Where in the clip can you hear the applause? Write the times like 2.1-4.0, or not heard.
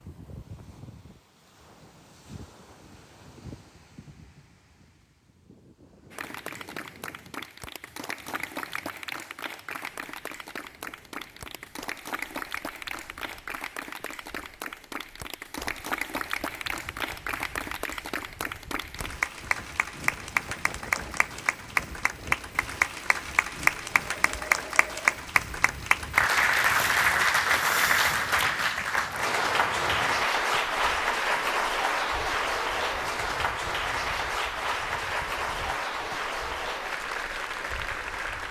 6.1-38.4.